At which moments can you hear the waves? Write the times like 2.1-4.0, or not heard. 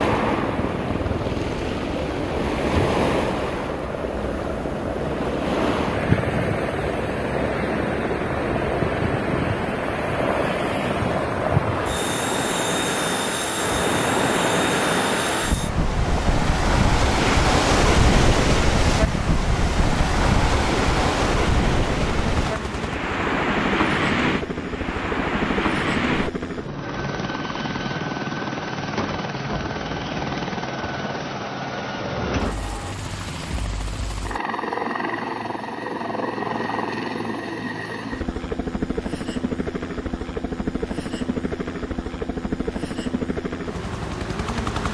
0.0-26.3.